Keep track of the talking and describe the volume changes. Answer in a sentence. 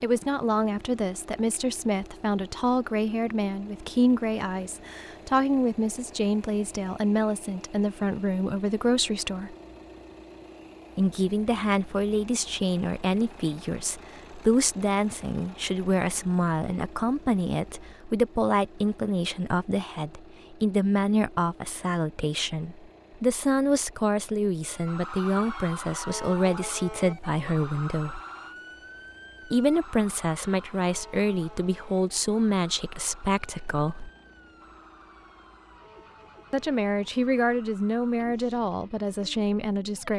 The volume of the talking stays about the same.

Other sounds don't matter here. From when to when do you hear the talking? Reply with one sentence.
You can hear the talking from 0.0 to 9.6 s, from 10.9 to 28.2 s, from 29.4 to 34.1 s and from 36.5 to 40.1 s.